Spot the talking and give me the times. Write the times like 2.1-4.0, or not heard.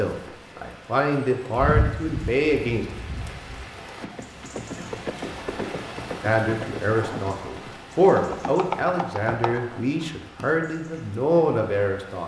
0.0-2.9, 6.2-12.2.